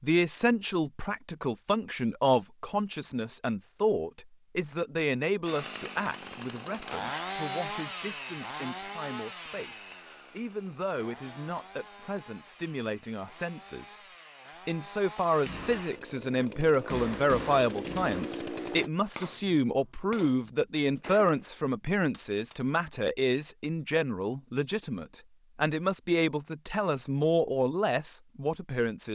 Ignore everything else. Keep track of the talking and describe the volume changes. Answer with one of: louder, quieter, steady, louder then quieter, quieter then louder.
quieter then louder.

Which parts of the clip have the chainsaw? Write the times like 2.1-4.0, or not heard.
5.5-18.9.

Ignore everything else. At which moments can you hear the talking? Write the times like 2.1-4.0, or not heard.
0.0-14.0, 14.7-29.1.